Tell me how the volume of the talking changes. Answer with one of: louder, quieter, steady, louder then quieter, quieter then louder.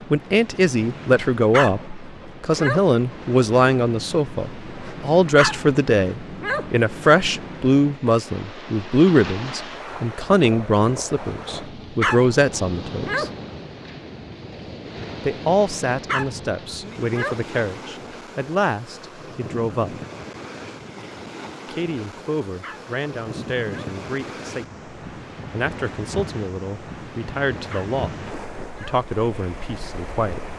quieter.